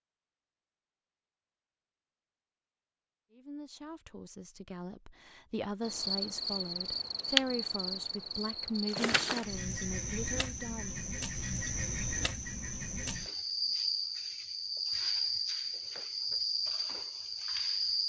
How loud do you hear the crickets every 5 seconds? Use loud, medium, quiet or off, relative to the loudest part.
off, loud, loud, loud.